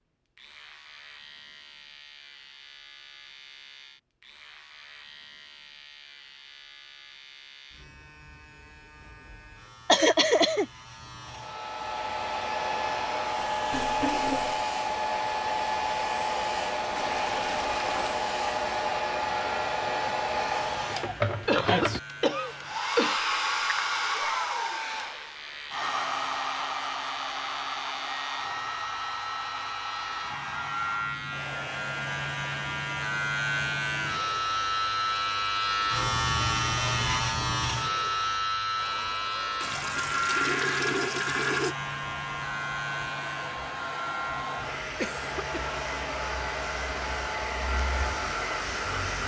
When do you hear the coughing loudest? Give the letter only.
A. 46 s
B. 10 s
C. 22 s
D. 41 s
B.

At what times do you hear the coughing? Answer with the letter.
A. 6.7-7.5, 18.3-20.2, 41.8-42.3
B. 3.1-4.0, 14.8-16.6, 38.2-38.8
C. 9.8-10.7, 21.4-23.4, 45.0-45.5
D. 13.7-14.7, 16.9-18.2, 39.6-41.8
C.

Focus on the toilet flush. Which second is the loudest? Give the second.
41 s.